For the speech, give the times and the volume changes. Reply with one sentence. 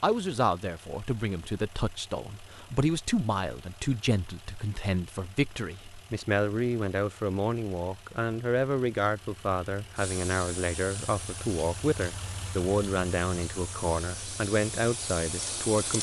You can hear the speech from 0.0 to 15.9 s, at a steady volume.